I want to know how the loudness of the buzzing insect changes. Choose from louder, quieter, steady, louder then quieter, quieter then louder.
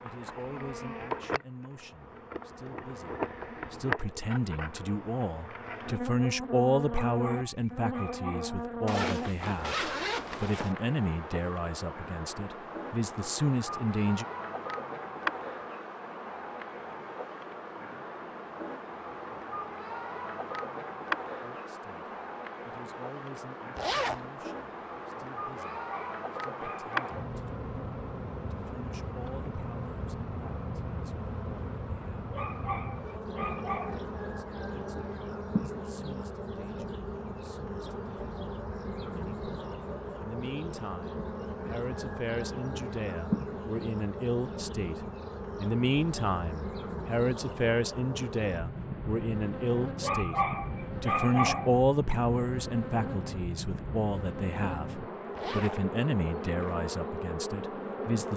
steady.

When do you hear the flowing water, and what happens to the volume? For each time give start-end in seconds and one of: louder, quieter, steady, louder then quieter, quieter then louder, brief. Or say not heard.
not heard.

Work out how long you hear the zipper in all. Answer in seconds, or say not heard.
3 s.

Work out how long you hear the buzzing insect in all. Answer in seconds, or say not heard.
58 s.